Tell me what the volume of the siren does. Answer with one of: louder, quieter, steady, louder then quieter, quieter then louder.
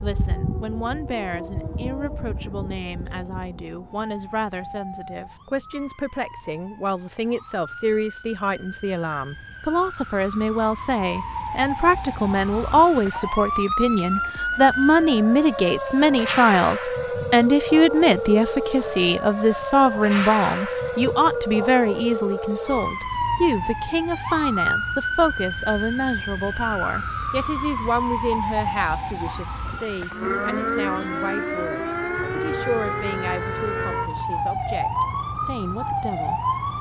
louder.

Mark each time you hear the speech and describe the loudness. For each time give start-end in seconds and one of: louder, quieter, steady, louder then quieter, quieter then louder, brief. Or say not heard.
0.0-36.5 louder then quieter.